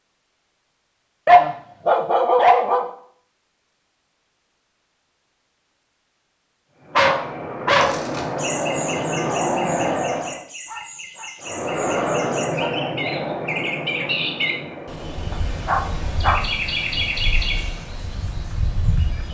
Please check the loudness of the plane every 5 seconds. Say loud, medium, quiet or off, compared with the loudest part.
off, loud, loud, quiet.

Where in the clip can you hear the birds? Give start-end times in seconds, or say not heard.
7.8-19.3.